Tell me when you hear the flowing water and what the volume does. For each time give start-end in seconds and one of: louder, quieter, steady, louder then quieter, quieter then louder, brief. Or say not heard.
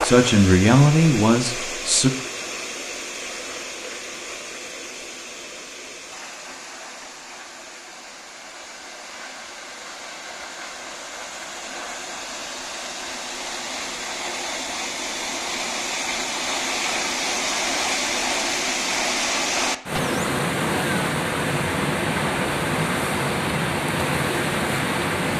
0.0-25.3 quieter then louder.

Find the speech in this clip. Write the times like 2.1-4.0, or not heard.
0.0-2.1.